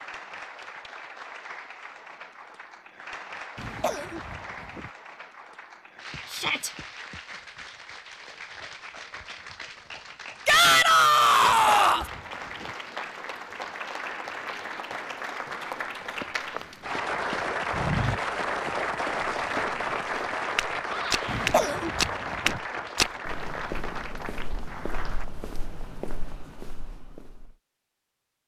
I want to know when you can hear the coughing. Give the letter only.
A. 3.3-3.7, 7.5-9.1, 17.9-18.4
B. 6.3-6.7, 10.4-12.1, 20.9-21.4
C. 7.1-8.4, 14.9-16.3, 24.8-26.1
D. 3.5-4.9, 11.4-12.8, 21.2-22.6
D.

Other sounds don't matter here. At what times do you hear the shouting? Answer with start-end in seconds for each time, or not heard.
6.3-6.7, 10.4-12.1, 20.9-21.4.